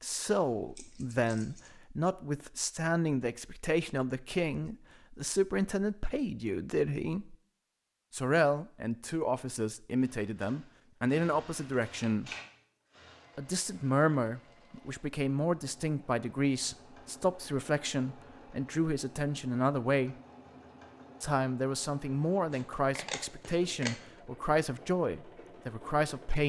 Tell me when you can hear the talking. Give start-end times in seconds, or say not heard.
0.0-7.3, 8.1-12.3, 13.3-20.1, 21.2-26.4.